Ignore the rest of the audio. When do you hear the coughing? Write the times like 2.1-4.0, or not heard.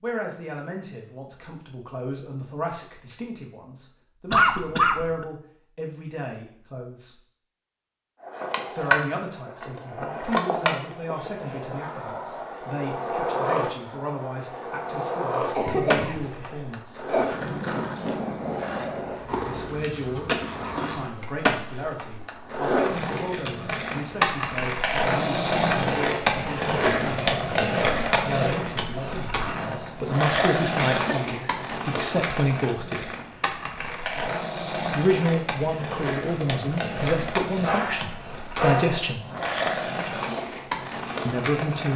4.3-5.2, 15.6-17.2, 29.4-31.4.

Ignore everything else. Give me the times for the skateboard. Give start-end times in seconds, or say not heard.
8.2-41.9.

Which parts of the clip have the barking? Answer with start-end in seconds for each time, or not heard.
37.6-39.1.